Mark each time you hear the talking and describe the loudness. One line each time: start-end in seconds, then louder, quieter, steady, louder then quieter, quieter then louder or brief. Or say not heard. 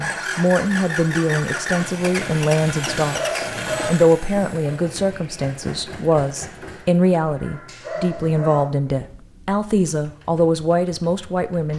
0.0-11.7 steady.